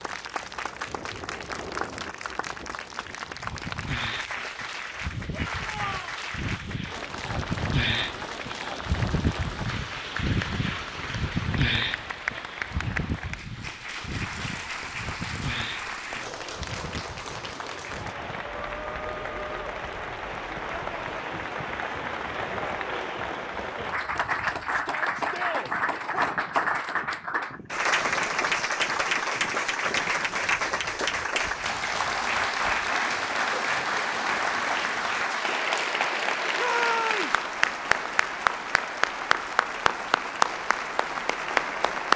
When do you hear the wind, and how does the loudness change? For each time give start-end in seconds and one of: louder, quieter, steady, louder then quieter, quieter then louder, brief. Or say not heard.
0.0-35.2 louder then quieter.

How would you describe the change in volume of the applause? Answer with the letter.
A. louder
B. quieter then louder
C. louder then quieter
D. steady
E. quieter
A.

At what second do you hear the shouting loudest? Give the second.
37 s.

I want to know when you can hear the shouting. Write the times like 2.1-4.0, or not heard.
5.3-6.2, 24.7-26.3, 36.5-37.4.